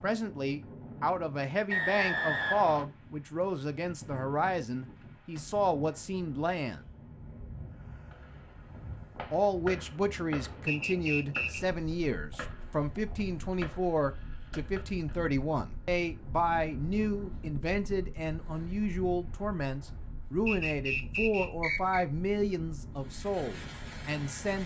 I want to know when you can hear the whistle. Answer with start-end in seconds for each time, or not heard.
1.7-2.9, 10.7-11.6, 20.4-22.1.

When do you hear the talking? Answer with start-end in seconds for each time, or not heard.
0.0-6.8, 9.3-24.6.